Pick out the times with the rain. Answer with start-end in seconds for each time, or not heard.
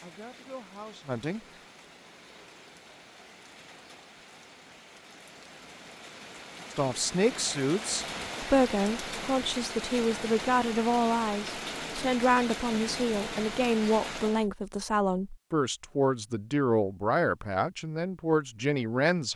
0.0-14.5.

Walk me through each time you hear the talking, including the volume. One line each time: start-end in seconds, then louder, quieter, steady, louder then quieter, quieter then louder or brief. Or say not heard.
0.0-1.4 brief
6.7-19.3 steady.